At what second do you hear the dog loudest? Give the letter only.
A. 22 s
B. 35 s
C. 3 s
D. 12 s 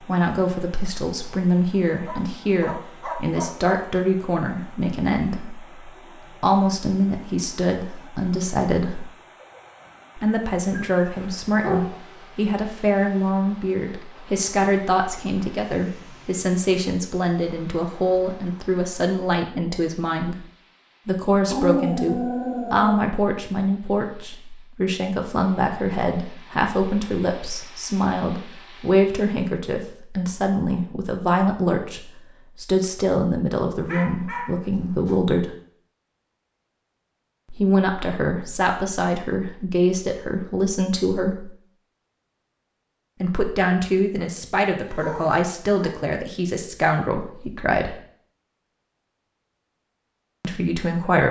A.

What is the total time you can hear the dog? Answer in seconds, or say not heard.
7 s.